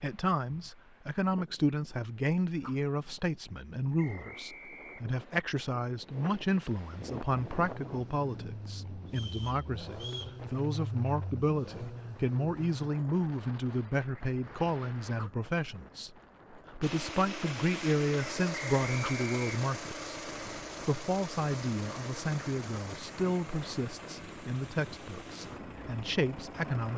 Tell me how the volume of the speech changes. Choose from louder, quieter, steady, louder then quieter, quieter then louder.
steady.